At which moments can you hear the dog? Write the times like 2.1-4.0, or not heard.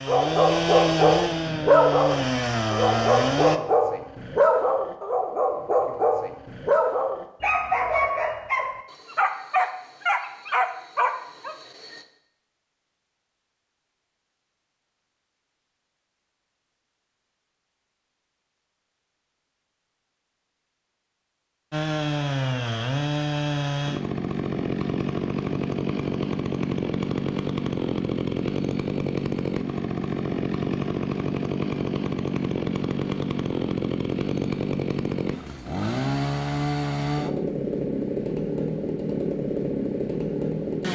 0.1-12.1.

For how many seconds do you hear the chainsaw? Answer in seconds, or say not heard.
23 s.